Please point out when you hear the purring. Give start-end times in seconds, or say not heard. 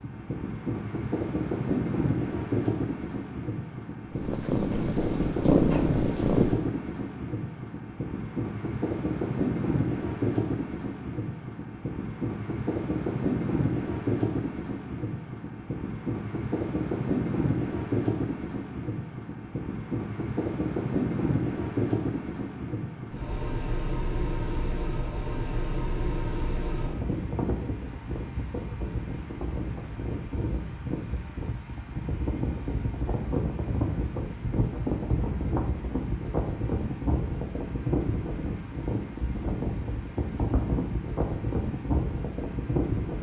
4.1-6.7.